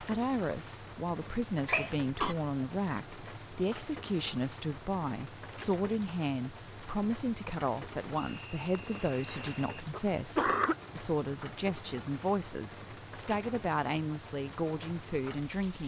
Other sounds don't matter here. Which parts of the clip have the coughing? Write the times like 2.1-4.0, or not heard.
1.6-2.4, 8.8-10.8.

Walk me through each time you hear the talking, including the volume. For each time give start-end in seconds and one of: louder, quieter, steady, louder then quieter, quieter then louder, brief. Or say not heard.
0.0-15.8 steady.